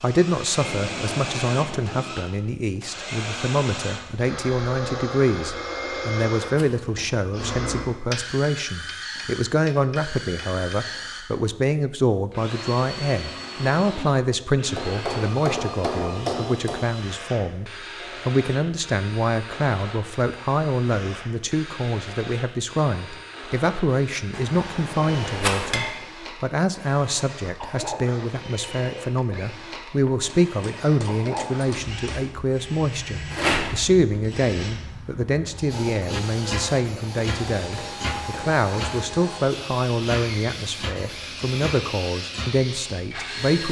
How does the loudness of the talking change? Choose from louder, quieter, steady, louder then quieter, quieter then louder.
steady.